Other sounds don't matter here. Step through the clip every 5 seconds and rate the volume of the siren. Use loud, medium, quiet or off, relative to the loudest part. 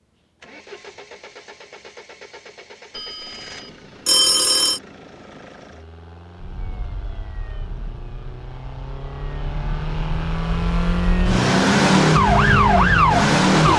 off, quiet, loud.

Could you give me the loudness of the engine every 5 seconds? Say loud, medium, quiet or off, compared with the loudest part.
quiet, quiet, loud.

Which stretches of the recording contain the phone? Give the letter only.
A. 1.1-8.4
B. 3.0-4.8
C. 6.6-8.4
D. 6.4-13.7
B.